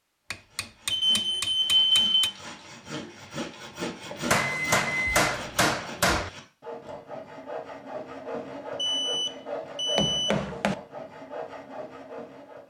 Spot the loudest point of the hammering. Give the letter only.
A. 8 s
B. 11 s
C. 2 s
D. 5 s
D.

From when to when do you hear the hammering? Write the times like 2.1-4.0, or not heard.
0.3-2.3, 4.3-6.3, 9.9-10.8.